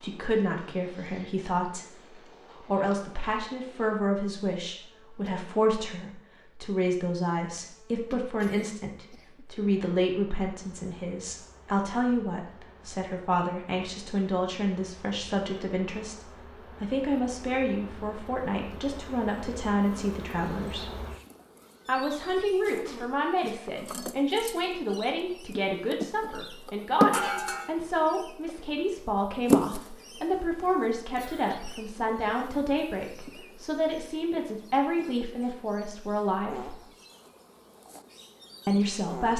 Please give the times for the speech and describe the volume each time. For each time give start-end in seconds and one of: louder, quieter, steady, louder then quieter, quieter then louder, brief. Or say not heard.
0.0-1.9 brief
2.5-20.9 steady
21.9-36.8 steady
38.6-39.3 brief.